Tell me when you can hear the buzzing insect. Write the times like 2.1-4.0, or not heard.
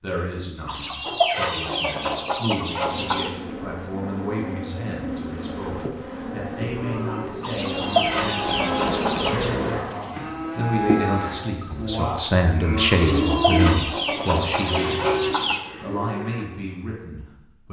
2.8-11.9.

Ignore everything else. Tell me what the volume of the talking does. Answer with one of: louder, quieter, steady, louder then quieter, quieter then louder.
louder then quieter.